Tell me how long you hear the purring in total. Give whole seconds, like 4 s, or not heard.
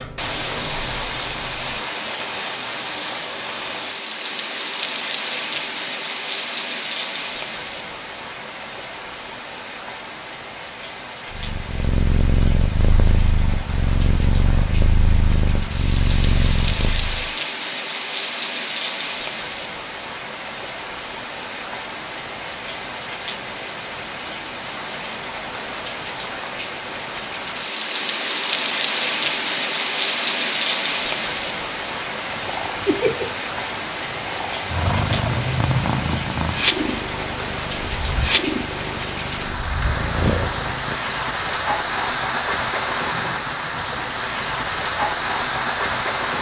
15 s.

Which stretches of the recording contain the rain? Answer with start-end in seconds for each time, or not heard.
0.0-46.3.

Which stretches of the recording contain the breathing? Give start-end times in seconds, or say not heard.
not heard.